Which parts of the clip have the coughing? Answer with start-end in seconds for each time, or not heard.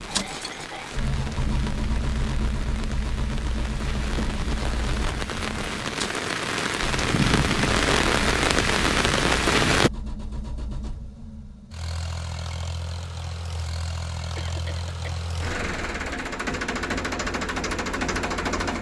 0.1-1.0, 14.3-15.3.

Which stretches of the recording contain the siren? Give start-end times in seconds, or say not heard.
not heard.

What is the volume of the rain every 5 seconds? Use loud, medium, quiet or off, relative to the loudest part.
quiet, loud, off, off.